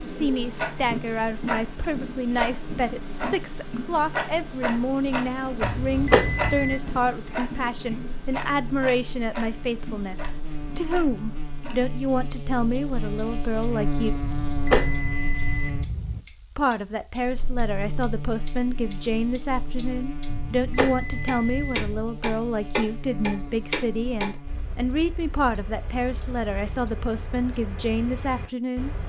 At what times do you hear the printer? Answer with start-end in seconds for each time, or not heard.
not heard.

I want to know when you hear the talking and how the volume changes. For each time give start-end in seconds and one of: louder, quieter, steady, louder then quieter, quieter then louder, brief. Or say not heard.
0.0-14.2 steady
16.6-28.9 steady.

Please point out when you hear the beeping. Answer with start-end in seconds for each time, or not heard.
5.6-6.8, 14.2-16.2, 20.2-22.1.